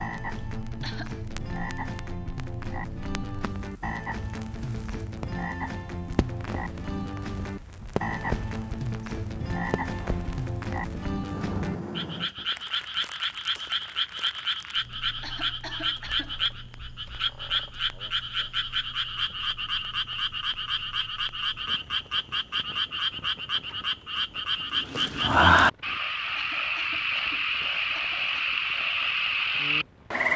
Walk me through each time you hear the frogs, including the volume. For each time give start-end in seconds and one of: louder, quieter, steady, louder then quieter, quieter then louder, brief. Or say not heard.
0.0-30.3 louder.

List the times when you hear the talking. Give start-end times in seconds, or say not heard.
not heard.